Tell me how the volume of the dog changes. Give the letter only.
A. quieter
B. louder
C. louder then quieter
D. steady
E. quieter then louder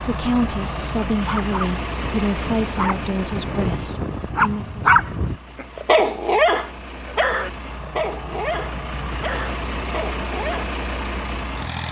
C.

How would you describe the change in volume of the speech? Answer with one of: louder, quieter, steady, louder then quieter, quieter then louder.
quieter.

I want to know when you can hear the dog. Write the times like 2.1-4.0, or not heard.
0.3-10.7.